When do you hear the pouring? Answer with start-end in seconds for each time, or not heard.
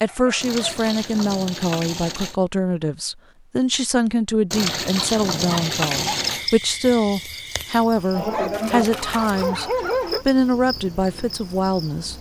0.4-2.4, 4.5-6.5, 8.5-9.5.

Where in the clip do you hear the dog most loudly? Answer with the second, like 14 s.
10 s.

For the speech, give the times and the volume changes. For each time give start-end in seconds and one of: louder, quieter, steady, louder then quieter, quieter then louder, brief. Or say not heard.
0.0-9.7 steady
10.2-12.1 brief.